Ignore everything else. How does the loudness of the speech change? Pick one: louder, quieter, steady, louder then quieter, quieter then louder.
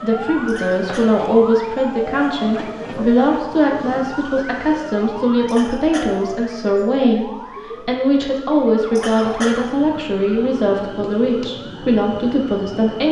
steady.